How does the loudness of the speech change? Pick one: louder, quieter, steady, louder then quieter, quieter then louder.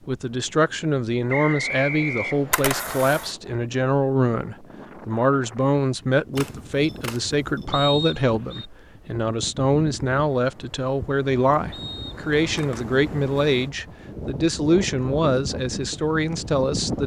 steady.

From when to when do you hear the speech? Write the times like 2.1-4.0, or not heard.
0.1-17.0.